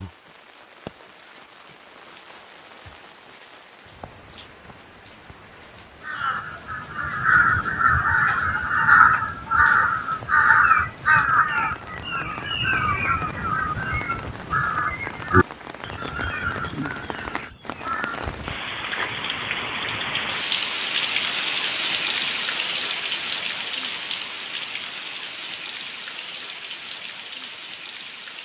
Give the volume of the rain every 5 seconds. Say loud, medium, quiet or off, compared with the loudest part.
quiet, quiet, quiet, medium, loud, medium.